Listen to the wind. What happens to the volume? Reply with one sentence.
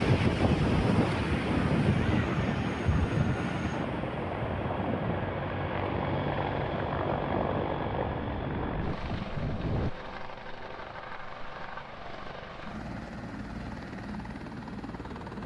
The loudness of the wind goes down.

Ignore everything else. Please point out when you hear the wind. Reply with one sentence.
The wind can be heard from 0.0 to 9.9 s.